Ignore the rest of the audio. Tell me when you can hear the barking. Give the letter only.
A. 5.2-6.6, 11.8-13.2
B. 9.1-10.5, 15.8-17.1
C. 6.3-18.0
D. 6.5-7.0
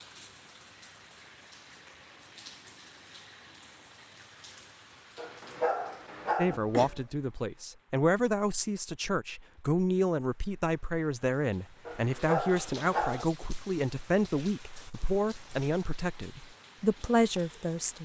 A.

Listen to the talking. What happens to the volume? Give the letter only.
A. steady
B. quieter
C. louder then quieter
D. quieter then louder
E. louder
A.